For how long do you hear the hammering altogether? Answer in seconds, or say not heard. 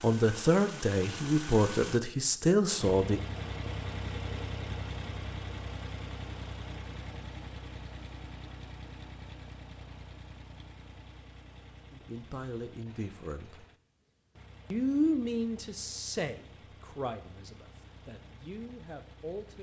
not heard.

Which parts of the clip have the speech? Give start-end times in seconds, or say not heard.
0.0-3.2, 11.9-13.7, 14.7-19.5.